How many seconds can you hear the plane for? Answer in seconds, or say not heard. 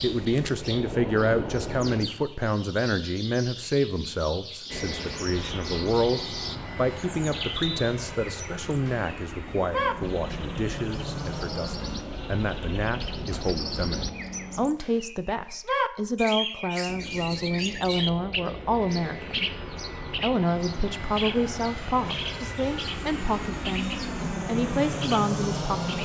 21 s.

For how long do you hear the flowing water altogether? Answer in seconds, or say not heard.
not heard.